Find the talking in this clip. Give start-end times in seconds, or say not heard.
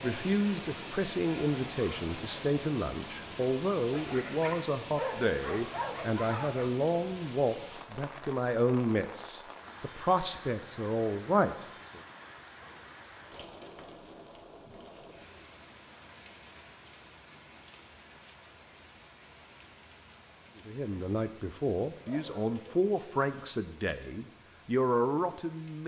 0.0-12.0, 20.6-25.8.